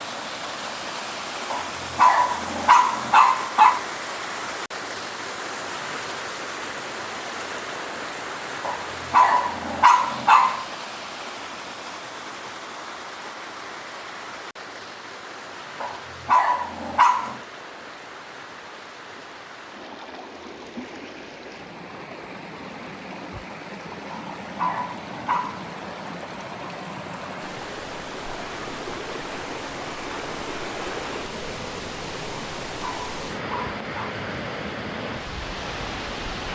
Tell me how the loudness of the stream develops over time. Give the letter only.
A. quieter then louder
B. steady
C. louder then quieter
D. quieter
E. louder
A.